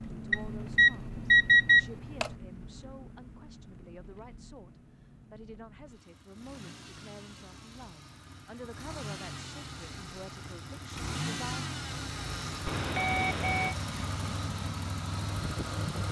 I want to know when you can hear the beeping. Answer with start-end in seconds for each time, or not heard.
0.3-2.4, 12.7-13.8.